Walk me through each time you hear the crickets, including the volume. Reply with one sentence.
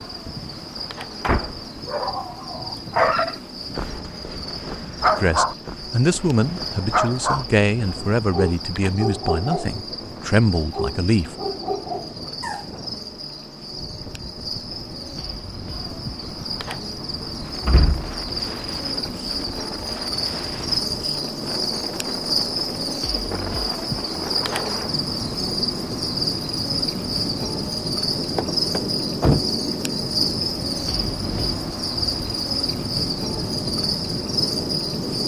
The crickets can be heard from 0.0 to 35.2 s, getting louder.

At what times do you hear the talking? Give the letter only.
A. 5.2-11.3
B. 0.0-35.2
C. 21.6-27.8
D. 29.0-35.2
A.